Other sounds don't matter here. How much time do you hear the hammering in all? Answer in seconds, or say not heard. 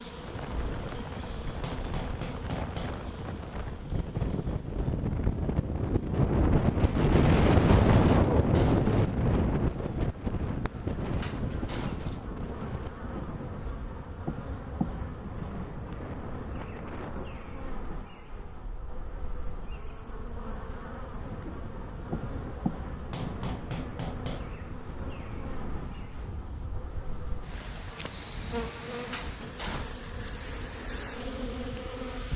3 s.